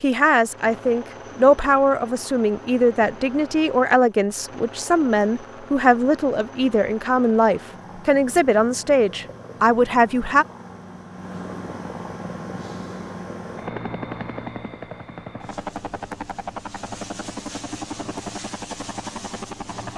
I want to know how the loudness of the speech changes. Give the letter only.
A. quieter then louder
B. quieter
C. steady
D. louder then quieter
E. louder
C.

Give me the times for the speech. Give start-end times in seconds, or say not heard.
0.0-10.4.